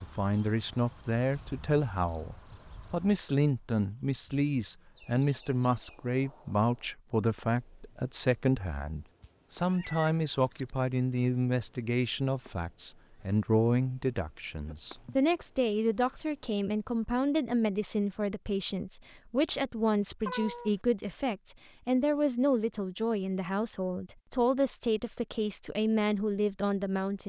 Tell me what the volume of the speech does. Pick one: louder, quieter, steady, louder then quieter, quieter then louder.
steady.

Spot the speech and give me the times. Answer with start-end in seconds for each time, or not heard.
0.0-27.2.